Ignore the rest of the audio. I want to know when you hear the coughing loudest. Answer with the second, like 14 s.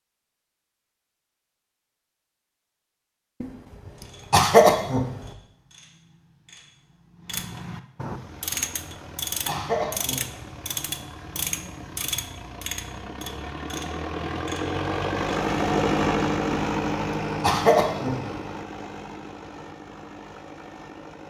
5 s.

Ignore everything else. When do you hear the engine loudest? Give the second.
16 s.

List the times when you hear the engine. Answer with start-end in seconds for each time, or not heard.
8.0-21.2.